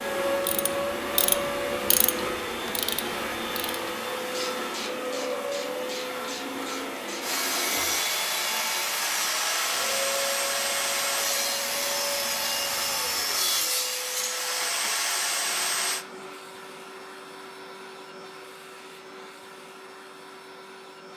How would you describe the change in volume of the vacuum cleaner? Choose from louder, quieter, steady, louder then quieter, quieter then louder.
quieter.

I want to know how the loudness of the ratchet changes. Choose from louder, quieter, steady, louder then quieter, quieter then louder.
quieter.